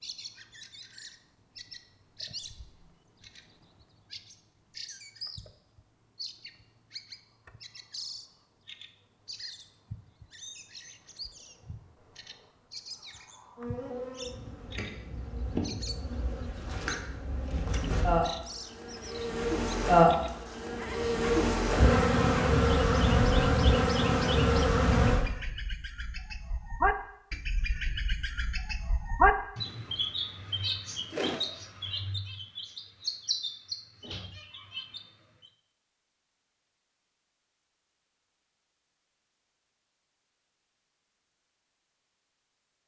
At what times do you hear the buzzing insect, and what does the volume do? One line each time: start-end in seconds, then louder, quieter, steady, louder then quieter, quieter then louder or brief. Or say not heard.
13.6-25.2 louder.